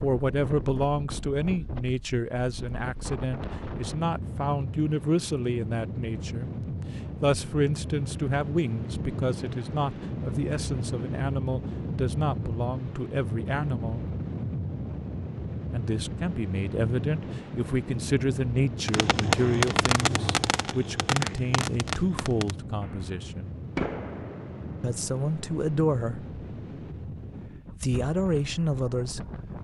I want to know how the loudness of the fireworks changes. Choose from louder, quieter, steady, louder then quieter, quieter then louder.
quieter then louder.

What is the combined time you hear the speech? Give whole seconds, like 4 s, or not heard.
25 s.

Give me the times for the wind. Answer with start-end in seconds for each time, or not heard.
0.0-29.5.